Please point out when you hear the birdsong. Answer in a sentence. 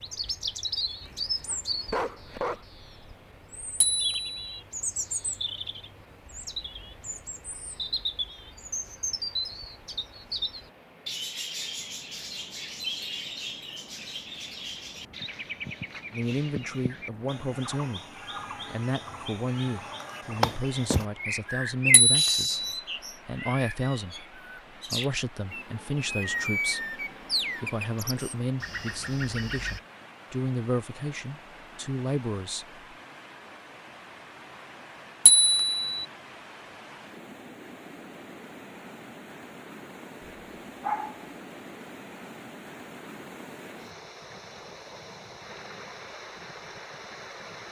You can hear the birdsong from 0.0 to 29.8 s.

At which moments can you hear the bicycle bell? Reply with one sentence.
The bicycle bell can be heard from 3.8 to 4.6 s, from 21.9 to 22.8 s and from 35.2 to 36.0 s.